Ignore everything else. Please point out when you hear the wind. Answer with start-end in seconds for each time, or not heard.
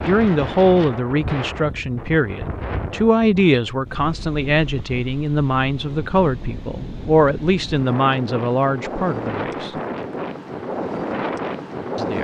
0.0-12.1.